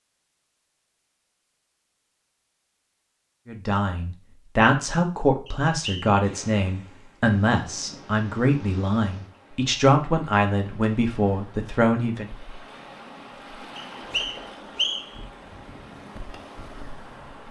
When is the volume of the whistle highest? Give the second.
15 s.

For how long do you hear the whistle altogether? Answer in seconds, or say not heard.
2 s.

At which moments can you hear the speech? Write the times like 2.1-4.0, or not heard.
3.5-12.2.